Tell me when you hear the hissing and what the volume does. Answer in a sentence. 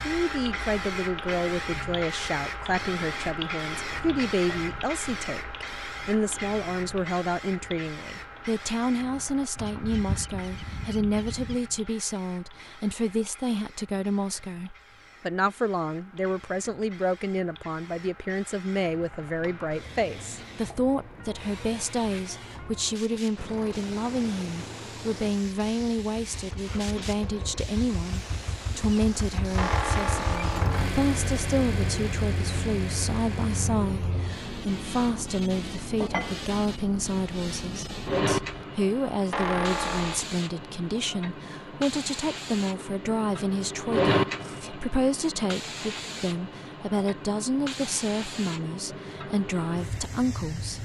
You can hear the hissing from 0.0 to 50.7 s, getting quieter then louder.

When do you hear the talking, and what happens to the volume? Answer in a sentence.
You can hear the talking from 0.0 to 50.7 s, at a steady volume.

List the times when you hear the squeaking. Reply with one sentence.
You can hear the squeaking from 9.6 to 11.6 s, from 29.6 to 31.1 s and from 39.3 to 40.2 s.